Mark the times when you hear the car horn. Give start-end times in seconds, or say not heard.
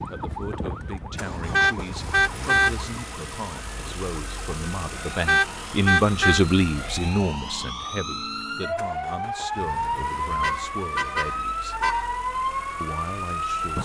1.5-2.7, 5.2-6.5, 10.4-12.1.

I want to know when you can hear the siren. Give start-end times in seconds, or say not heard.
0.0-13.8.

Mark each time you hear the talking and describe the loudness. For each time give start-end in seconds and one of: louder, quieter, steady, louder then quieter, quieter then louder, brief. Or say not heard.
0.1-11.8 louder then quieter
12.8-13.8 brief.